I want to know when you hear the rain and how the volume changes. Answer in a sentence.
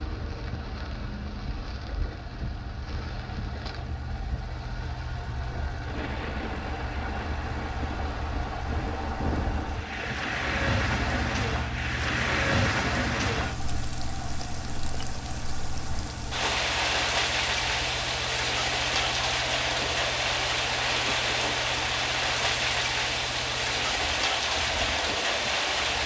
You can hear the rain from 0.0 to 26.0 s, getting louder.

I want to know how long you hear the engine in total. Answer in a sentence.
The engine can be heard for 26 seconds in total.